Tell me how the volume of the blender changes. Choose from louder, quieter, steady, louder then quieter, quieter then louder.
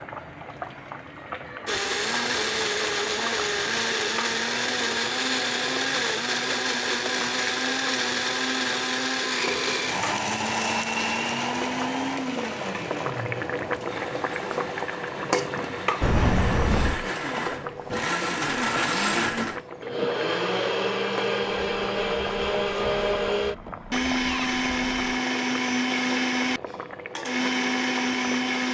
quieter then louder.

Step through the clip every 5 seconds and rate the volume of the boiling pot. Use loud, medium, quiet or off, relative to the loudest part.
medium, medium, loud, loud, medium, medium.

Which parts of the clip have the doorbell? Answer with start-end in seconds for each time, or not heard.
16.0-17.1.